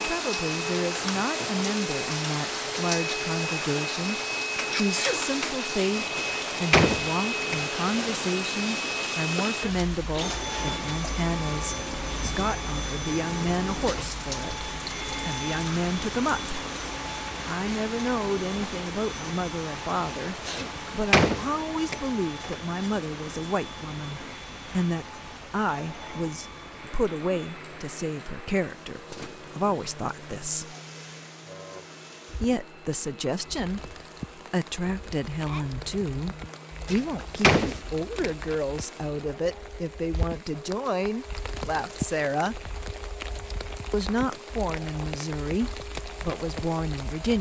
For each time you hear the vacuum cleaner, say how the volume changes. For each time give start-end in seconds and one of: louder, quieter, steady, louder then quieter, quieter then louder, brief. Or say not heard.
0.0-47.3 quieter.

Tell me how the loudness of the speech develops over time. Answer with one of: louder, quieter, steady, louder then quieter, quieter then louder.
steady.